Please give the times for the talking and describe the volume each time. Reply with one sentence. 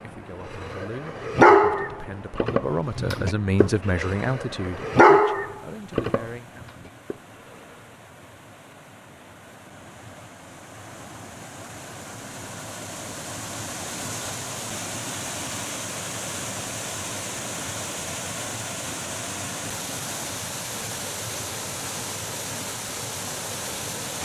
You can hear the talking from 0.0 to 6.7 s, getting louder then quieter.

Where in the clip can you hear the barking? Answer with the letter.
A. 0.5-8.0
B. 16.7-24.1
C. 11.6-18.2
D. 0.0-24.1
A.